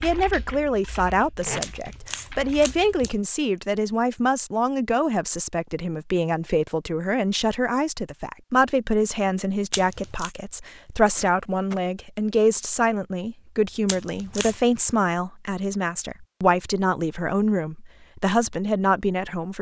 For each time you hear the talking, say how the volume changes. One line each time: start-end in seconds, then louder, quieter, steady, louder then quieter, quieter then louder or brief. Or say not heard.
0.0-19.5 steady.